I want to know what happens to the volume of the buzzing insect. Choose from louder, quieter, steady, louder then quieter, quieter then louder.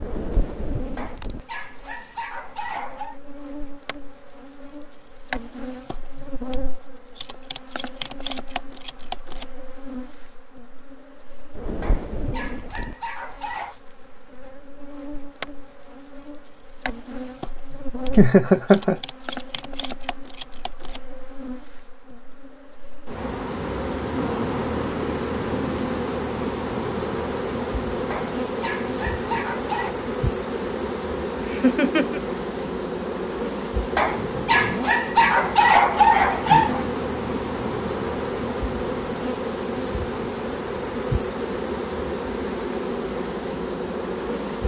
louder.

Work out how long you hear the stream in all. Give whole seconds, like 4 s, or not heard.
not heard.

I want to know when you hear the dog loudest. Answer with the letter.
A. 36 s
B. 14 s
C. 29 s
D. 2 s
A.